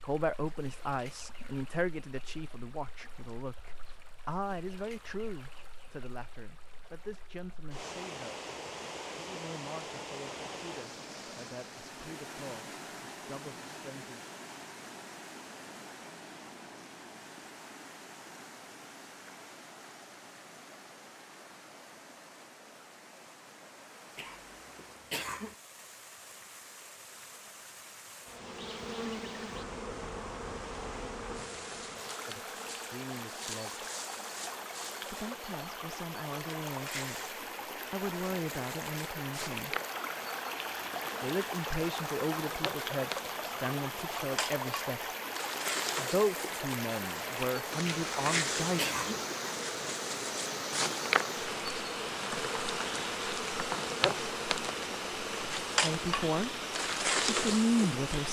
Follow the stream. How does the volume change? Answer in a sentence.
The loudness of the stream goes up.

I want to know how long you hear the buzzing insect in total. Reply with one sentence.
The buzzing insect can be heard for 30 seconds in total.